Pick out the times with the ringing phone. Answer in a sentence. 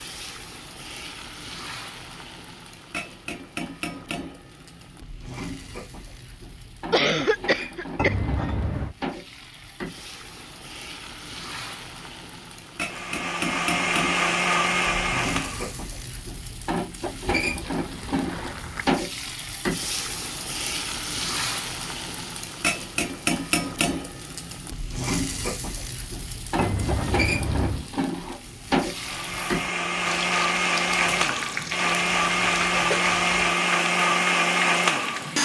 The ringing phone can't be heard in this clip.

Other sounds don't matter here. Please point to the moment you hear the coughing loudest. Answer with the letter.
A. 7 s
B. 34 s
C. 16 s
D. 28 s
A.